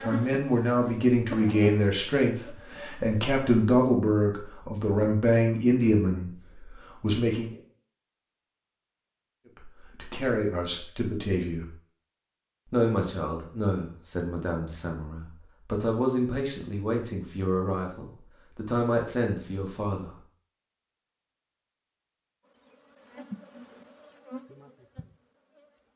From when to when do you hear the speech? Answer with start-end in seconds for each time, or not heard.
0.0-7.5, 9.6-11.7, 12.7-20.1.